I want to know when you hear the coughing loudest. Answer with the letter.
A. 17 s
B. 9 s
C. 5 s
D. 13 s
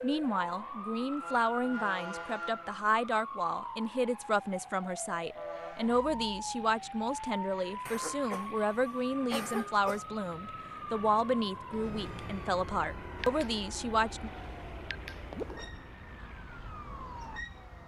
B.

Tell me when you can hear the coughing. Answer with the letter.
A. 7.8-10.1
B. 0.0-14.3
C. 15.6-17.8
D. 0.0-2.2
A.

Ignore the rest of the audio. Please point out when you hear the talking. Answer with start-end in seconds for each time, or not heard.
0.0-14.3.